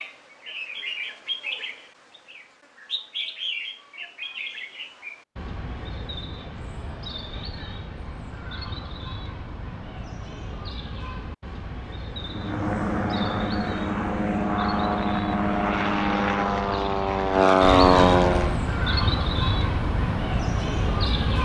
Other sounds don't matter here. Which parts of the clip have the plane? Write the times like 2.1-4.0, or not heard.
12.1-18.6.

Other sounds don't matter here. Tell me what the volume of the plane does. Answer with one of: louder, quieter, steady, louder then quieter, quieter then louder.
louder.